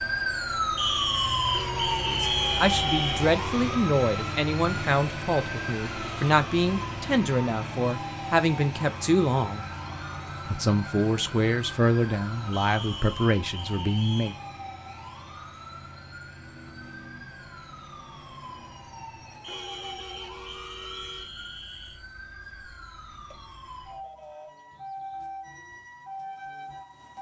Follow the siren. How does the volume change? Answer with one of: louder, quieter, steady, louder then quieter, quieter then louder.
quieter.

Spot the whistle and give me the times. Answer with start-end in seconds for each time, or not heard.
0.8-3.3, 12.5-14.4, 19.4-22.0.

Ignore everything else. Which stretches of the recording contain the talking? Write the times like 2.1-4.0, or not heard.
2.1-9.7, 10.4-14.3.